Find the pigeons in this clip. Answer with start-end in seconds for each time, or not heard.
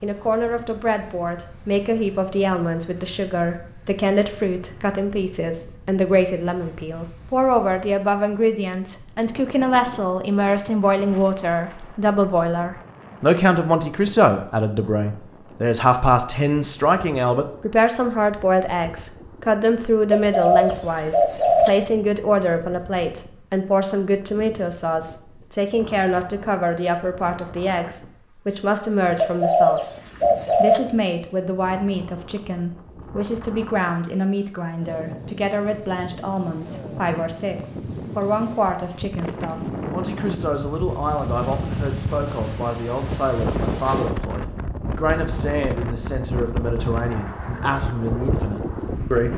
20.1-21.7, 29.2-30.8.